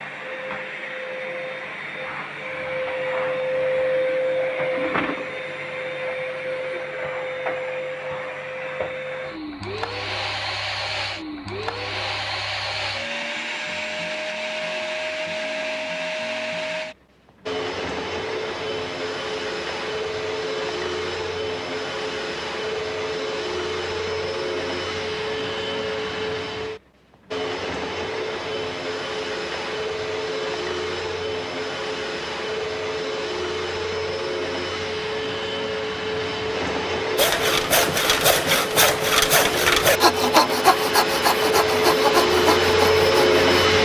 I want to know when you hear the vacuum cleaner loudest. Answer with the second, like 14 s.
43 s.